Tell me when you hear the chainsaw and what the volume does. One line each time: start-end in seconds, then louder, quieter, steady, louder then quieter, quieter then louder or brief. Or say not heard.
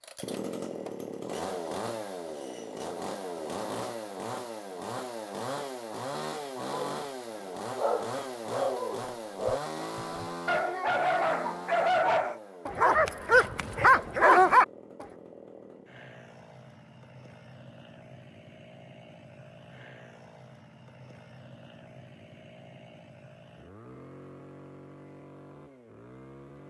0.0-26.6 quieter.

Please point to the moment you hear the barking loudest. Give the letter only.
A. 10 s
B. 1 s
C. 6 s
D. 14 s
D.